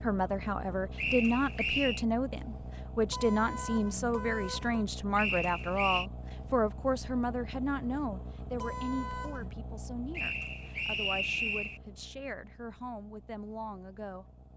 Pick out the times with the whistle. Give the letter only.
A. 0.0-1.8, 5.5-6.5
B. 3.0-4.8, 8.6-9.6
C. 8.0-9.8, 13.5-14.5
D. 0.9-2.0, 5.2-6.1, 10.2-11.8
D.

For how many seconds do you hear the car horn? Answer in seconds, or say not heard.
3 s.